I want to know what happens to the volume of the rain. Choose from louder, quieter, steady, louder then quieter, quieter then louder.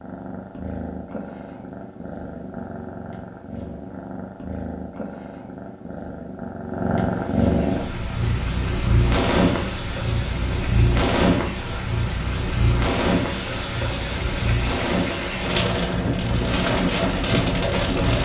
louder.